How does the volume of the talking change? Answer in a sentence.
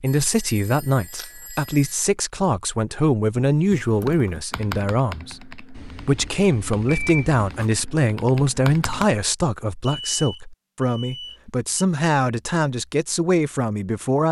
The volume of the talking stays about the same.